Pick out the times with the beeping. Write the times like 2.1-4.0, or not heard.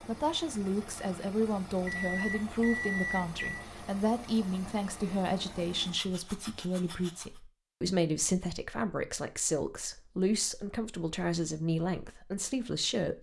1.8-3.6.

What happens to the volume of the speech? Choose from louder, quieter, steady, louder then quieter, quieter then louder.
steady.